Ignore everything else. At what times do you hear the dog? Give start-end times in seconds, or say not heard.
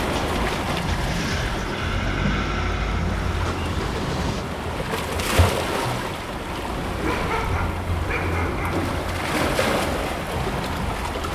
7.0-8.9.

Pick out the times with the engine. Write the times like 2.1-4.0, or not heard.
0.0-4.5.